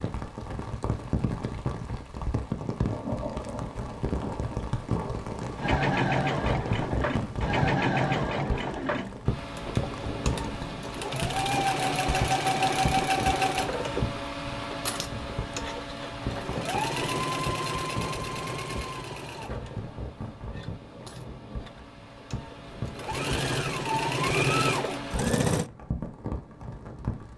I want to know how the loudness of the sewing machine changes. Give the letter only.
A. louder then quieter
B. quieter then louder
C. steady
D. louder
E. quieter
B.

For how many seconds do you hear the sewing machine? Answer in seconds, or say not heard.
20 s.